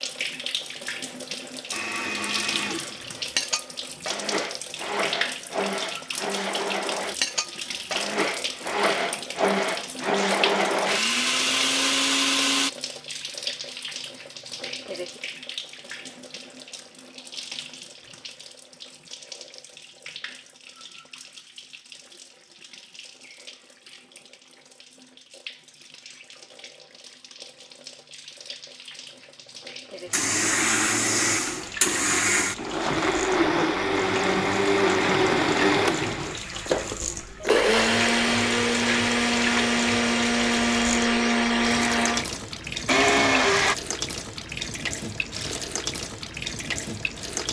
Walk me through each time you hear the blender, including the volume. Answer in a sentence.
The blender can be heard from 1.7 to 12.7 s, getting louder; and from 30.1 to 43.8 s, at a steady volume.